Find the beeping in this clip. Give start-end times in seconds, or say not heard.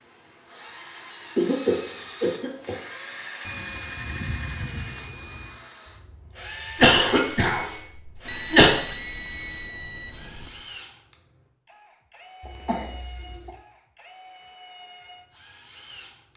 3.4-5.7, 8.2-10.7.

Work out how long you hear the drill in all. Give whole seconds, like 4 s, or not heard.
16 s.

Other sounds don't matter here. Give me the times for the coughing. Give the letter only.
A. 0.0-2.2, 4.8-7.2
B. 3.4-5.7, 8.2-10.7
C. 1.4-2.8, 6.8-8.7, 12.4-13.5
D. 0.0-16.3
C.